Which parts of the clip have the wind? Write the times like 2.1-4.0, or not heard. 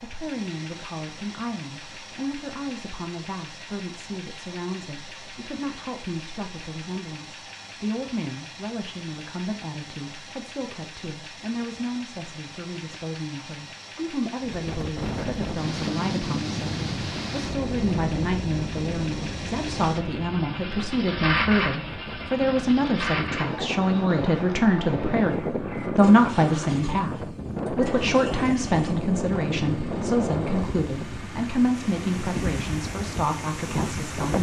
14.4-34.3.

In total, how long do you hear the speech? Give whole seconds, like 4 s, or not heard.
34 s.